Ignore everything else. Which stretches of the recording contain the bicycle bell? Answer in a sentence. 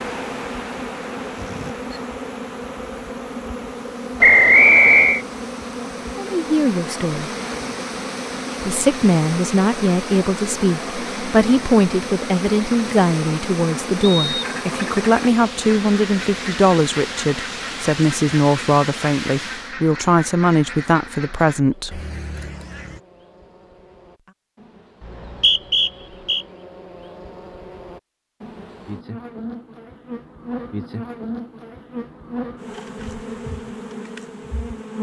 The bicycle bell can be heard from 1.4 to 2.0 s.